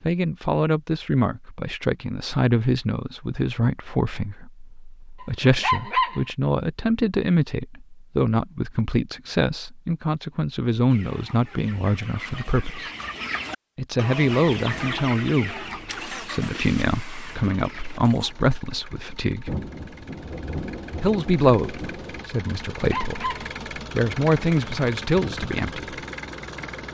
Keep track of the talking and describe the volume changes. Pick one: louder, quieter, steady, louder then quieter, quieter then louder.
steady.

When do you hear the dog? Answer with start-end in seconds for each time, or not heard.
5.2-6.2, 22.7-23.5.